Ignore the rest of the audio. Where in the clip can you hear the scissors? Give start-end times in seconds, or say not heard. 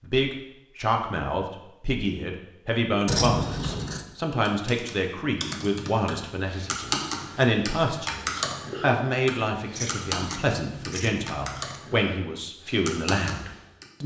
3.0-4.0, 9.8-11.8.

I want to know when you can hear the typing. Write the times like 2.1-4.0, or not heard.
4.3-13.8.